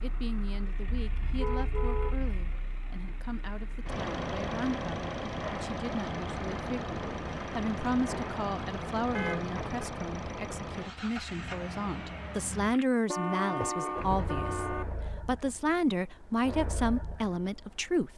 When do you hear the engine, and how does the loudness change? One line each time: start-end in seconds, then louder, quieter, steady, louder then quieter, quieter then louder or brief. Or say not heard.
0.0-18.1 louder then quieter.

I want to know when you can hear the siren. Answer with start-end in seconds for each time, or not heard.
not heard.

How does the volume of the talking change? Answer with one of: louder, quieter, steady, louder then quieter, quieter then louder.
louder.